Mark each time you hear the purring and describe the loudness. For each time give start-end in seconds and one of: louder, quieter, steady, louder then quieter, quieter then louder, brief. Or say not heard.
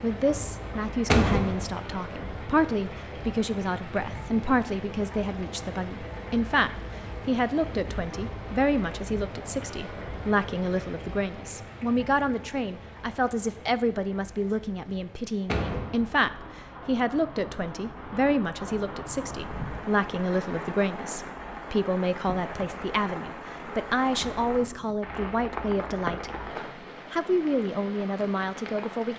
not heard.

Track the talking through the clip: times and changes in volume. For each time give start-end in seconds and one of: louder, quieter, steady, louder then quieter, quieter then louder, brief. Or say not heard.
0.0-26.3 steady
27.1-29.1 brief.